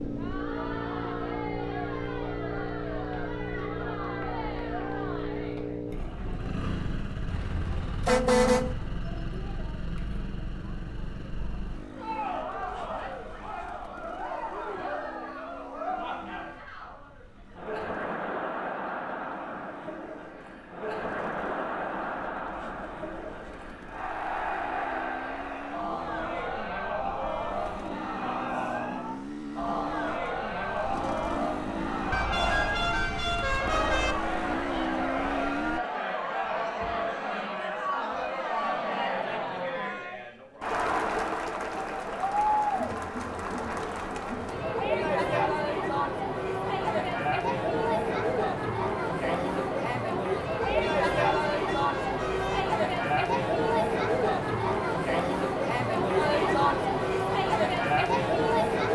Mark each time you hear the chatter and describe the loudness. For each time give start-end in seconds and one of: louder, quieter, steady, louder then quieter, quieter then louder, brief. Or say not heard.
0.0-58.9 louder.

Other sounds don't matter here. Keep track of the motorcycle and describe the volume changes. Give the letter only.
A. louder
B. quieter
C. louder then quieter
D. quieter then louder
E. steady
D.